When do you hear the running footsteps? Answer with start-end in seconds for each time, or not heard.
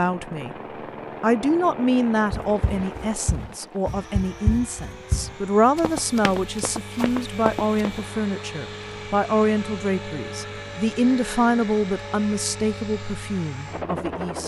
2.3-8.1.